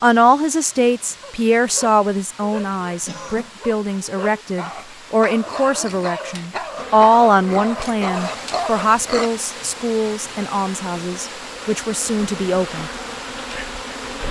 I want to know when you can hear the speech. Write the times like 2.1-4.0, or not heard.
0.0-12.9.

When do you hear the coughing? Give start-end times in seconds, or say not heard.
3.0-3.5.